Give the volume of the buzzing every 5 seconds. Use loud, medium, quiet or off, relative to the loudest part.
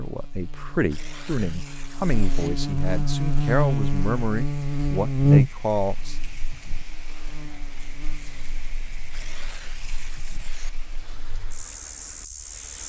loud, loud, quiet.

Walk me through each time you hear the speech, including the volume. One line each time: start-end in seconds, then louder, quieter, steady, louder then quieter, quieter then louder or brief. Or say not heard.
0.0-6.2 steady.